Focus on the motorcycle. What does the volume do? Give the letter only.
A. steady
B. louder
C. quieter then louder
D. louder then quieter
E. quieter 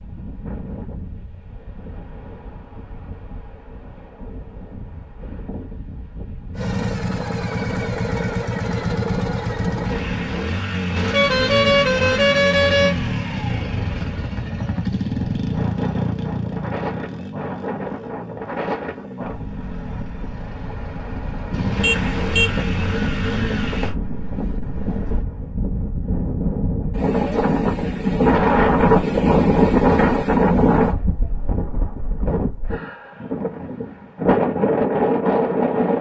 C.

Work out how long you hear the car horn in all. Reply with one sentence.
The car horn can be heard for 3 seconds in total.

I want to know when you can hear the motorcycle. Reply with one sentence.
The motorcycle can be heard from 6.5 to 23.9 s.